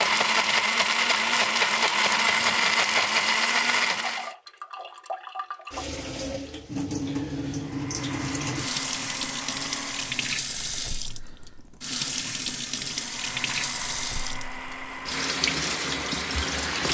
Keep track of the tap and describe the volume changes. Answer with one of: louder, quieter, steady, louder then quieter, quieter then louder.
louder.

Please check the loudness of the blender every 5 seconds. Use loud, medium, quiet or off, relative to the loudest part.
loud, quiet, quiet, quiet.